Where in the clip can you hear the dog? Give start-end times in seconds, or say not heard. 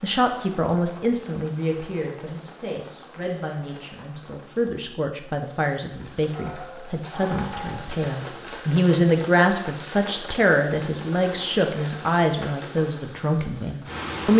6.3-7.8.